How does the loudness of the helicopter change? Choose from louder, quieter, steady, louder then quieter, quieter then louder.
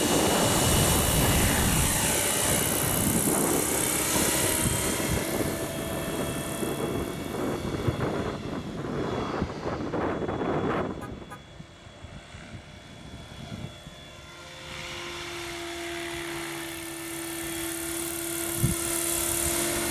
quieter then louder.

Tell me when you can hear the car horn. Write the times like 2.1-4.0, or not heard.
11.0-11.4.